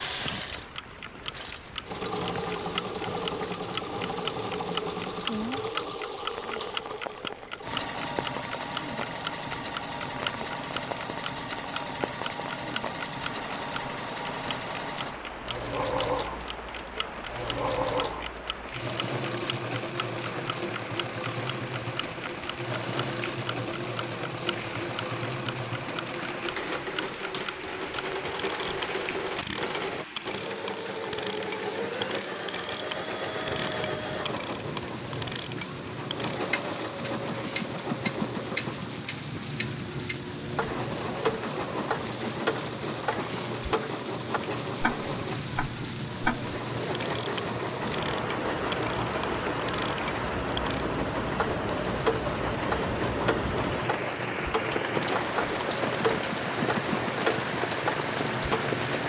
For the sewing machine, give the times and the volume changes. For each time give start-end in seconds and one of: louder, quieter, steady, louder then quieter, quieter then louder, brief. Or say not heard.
0.0-59.0 steady.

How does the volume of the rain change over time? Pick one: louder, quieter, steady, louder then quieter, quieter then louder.
louder.